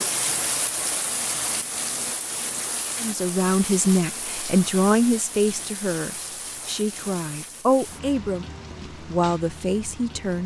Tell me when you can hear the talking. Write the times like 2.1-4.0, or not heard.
3.0-10.4.